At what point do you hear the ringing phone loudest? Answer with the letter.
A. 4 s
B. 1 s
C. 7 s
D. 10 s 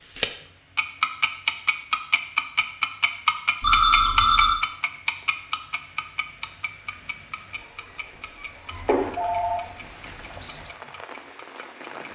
A.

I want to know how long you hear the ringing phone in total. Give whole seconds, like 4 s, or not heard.
2 s.